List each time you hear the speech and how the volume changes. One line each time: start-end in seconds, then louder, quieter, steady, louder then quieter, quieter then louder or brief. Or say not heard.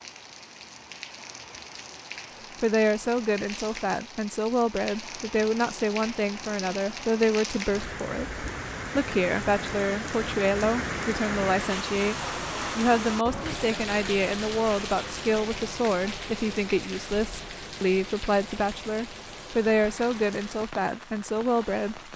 2.6-12.2 steady
12.8-22.1 steady.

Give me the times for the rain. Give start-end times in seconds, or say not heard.
0.0-22.1.